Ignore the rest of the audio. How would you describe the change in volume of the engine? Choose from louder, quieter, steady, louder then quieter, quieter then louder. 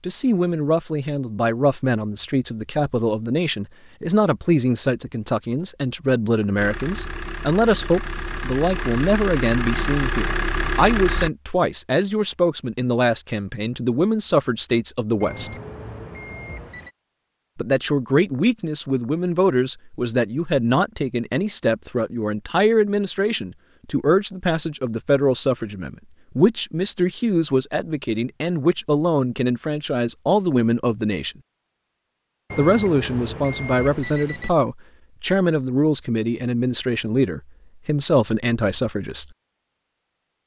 louder.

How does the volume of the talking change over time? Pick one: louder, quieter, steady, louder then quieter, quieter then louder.
steady.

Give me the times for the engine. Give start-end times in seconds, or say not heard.
6.5-11.3.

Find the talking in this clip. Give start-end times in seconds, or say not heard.
0.0-15.5, 17.6-31.4, 32.5-39.2.